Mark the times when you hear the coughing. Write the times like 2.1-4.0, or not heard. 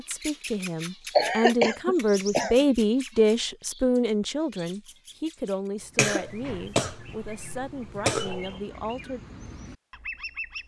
1.1-2.6, 6.0-8.4.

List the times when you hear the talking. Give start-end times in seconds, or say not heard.
0.0-9.2.